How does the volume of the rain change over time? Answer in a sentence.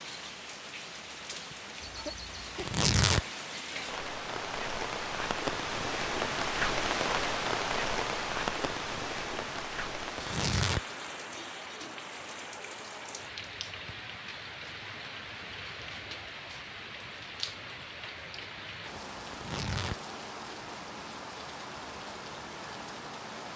The volume of the rain goes up, then down.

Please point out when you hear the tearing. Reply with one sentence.
You can hear the tearing from 2.5 to 3.2 s, from 10.2 to 10.8 s and from 19.3 to 19.9 s.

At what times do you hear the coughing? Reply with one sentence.
You can hear the coughing from 1.8 to 2.6 s.